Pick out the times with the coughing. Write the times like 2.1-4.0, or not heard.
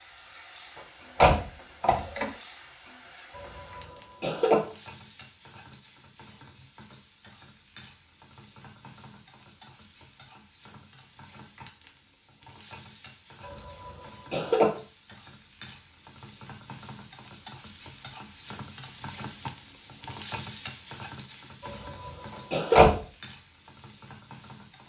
3.4-4.6, 13.4-14.7, 21.6-22.9.